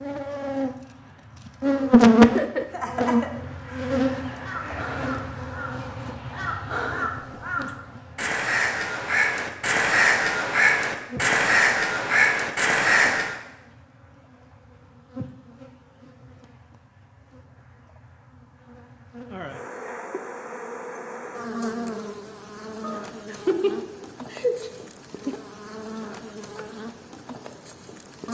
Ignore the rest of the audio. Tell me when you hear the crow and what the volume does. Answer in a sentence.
The crow can be heard from 2.7 to 13.3 s, getting louder.